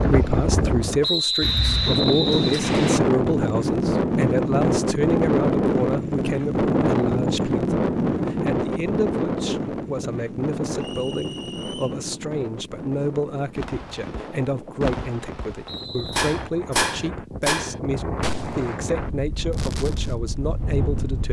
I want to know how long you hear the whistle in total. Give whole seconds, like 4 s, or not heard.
4 s.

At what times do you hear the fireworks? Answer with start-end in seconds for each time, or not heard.
13.6-20.1.